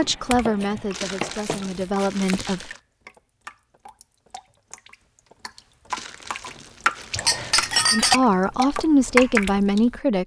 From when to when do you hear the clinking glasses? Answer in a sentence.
You can hear the clinking glasses from 0.3 to 2.5 s and from 7.2 to 8.2 s.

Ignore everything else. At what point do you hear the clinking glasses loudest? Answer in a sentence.
The loudest moment of the clinking glasses is at 8 seconds.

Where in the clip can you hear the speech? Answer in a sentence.
The speech can be heard from 0.0 to 2.7 s and from 7.9 to 10.2 s.